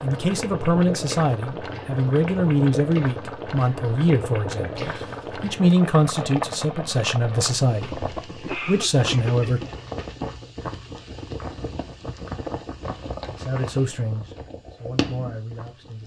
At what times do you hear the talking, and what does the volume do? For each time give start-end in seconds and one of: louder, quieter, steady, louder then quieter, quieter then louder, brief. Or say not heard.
0.0-9.6 steady
13.3-16.0 brief.